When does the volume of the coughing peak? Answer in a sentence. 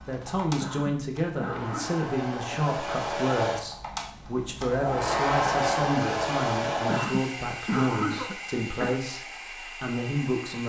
The loudest moment of the coughing is at 8 seconds.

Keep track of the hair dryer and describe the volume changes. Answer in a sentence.
The volume of the hair dryer goes up, then down.